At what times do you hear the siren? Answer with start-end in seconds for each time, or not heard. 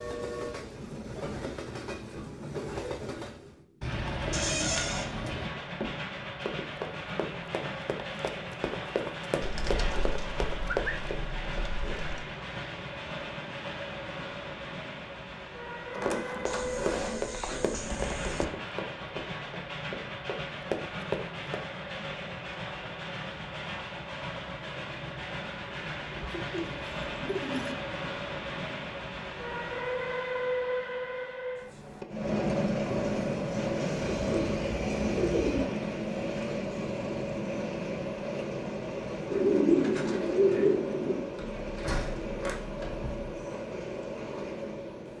not heard.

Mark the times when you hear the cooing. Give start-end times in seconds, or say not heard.
3.8-5.5, 9.4-12.2, 16.4-18.4, 26.1-27.8, 34.0-35.6, 39.2-41.2.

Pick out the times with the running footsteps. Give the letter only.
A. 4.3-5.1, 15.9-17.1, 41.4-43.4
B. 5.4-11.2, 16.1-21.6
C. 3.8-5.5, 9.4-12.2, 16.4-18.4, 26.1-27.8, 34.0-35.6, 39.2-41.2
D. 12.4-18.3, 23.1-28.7
B.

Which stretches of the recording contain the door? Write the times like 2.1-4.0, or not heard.
4.3-5.1, 15.9-17.1, 41.4-43.4.